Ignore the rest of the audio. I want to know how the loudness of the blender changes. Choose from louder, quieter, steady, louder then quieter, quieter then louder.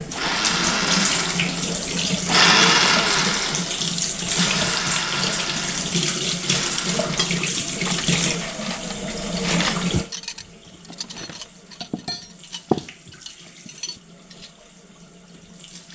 louder then quieter.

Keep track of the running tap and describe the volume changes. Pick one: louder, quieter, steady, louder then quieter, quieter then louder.
quieter.